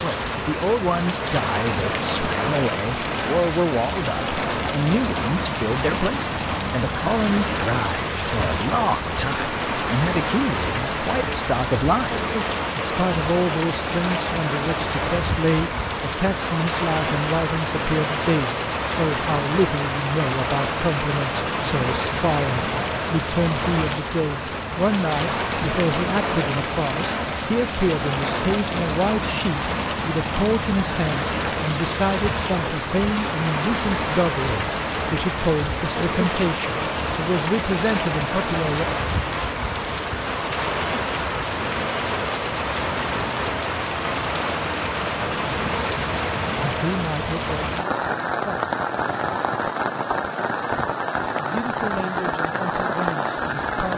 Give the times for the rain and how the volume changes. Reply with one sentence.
The rain can be heard from 0.0 to 53.9 s, at a steady volume.